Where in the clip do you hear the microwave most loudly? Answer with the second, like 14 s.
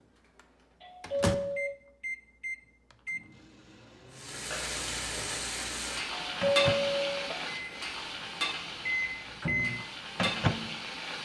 10 s.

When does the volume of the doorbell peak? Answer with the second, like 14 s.
7 s.